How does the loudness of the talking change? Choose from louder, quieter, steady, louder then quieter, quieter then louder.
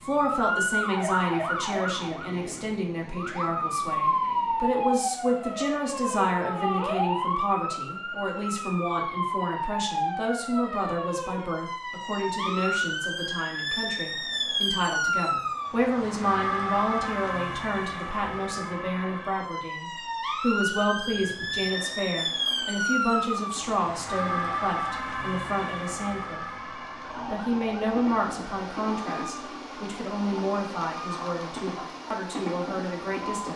steady.